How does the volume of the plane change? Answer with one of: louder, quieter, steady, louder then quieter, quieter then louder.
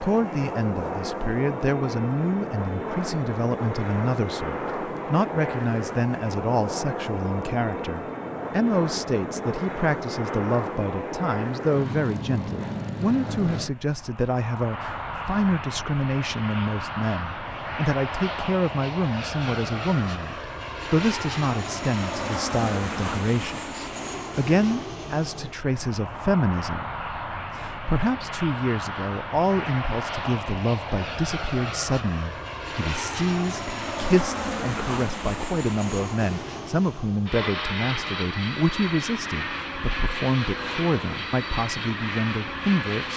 steady.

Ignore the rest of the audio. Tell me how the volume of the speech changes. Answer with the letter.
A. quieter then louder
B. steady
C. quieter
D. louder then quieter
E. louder
B.